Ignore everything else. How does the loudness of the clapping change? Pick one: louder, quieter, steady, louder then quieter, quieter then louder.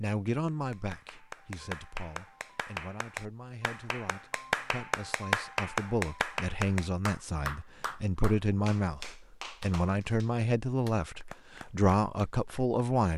louder then quieter.